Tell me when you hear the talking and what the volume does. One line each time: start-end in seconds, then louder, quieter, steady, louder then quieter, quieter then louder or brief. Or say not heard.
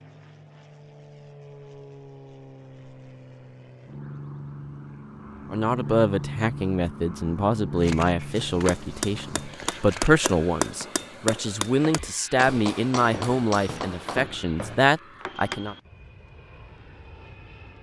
5.5-15.8 steady.